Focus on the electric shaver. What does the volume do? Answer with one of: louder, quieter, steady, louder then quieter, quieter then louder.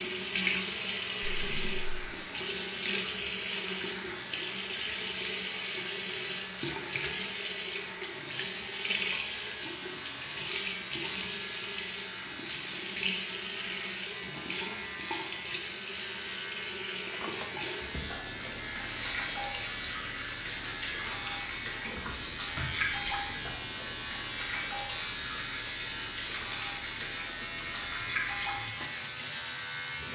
louder.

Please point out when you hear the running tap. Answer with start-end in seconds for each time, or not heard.
0.0-30.1.